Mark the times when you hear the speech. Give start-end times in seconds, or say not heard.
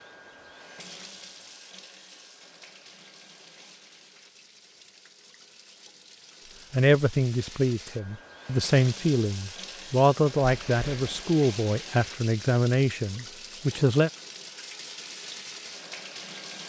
6.7-14.1.